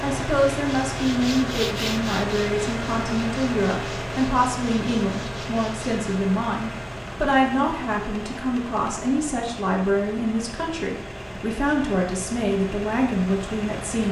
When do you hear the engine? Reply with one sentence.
The engine can be heard from 0.0 to 14.0 s.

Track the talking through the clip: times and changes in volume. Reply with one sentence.
The talking can be heard from 0.0 to 14.0 s, at a steady volume.